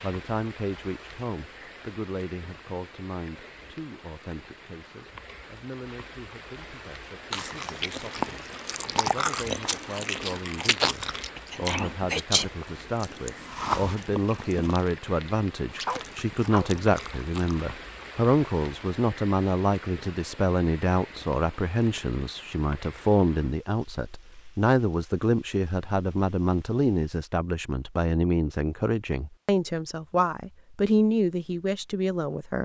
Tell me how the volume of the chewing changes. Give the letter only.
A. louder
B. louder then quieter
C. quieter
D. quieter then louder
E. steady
C.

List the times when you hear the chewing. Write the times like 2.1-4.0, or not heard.
7.3-17.6.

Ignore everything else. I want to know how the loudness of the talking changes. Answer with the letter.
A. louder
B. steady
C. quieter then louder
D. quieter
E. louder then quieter
A.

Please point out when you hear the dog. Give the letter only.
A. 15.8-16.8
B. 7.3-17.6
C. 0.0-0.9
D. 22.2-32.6
A.